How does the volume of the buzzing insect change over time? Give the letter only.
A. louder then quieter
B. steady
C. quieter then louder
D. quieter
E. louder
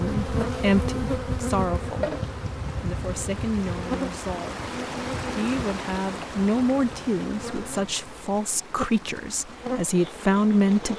C.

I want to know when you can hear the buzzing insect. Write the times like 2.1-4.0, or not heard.
0.0-10.9.